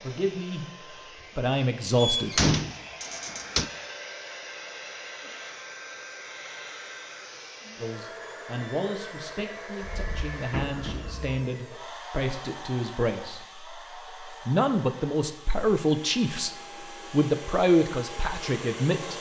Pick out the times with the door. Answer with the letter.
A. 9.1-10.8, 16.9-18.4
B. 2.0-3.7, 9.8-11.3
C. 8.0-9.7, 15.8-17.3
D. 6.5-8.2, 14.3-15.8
B.